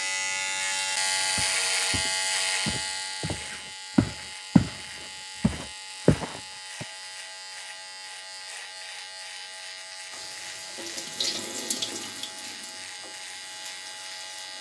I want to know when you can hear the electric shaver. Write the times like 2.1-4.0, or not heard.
0.0-14.5.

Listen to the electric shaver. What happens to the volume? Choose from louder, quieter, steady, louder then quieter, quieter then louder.
quieter.